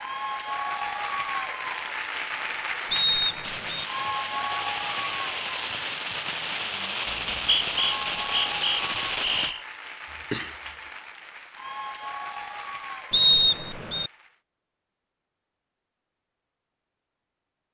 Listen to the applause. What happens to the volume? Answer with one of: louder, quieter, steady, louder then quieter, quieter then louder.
quieter.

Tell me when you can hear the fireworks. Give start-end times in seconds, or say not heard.
3.4-9.6.